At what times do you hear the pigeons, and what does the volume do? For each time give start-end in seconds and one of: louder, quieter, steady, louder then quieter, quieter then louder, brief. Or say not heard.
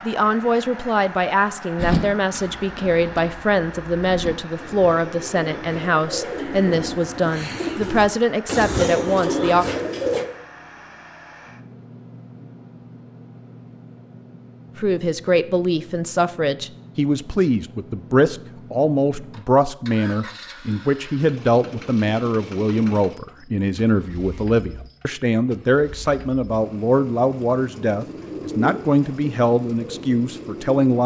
1.8-10.2 louder
27.9-30.8 brief.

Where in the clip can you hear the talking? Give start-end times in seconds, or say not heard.
0.1-9.7, 14.8-31.0.